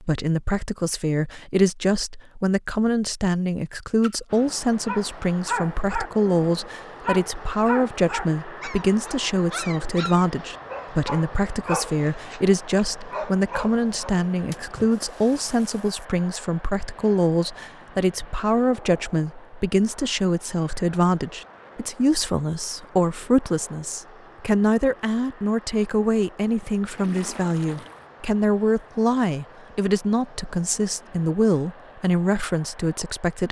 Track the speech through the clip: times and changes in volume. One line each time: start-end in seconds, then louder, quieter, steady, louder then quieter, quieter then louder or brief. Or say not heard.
0.0-33.4 steady.